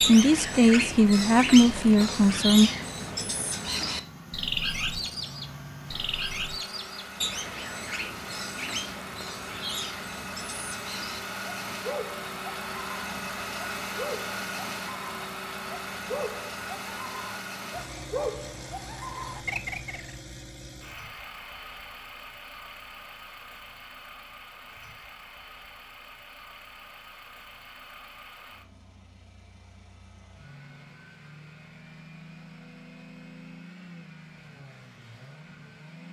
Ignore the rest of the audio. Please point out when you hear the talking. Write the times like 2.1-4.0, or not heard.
0.0-2.7.